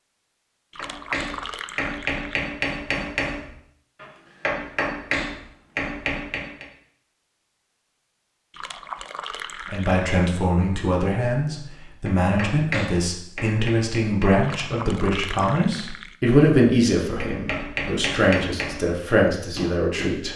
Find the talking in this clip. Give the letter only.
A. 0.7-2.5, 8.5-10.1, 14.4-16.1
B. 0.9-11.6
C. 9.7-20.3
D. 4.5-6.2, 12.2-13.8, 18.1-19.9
C.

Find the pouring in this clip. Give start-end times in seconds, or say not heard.
0.7-2.5, 8.5-10.1, 14.4-16.1.